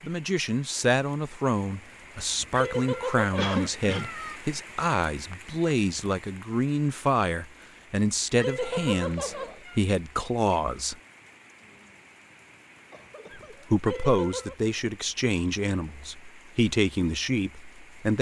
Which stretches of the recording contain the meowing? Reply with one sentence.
The meowing can be heard from 2.5 to 4.4 s, from 8.3 to 9.8 s and from 13.8 to 14.6 s.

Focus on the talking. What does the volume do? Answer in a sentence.
The volume of the talking stays about the same.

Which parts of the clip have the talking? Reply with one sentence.
The talking can be heard from 0.0 to 10.9 s and from 13.7 to 18.1 s.